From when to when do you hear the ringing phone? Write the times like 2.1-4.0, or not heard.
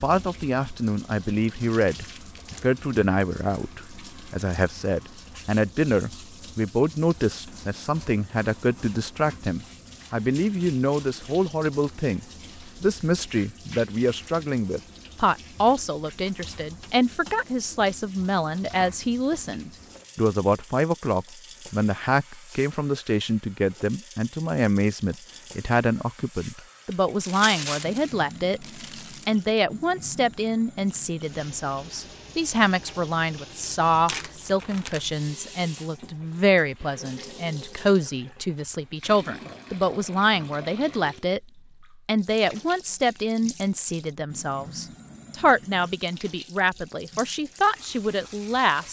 not heard.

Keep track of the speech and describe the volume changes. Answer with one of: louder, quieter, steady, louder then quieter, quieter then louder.
steady.